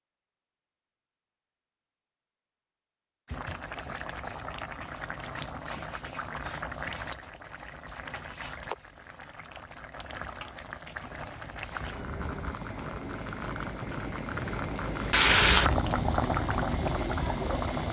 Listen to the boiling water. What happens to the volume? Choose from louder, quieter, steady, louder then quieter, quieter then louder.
louder.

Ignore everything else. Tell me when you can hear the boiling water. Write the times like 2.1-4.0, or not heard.
3.2-17.8.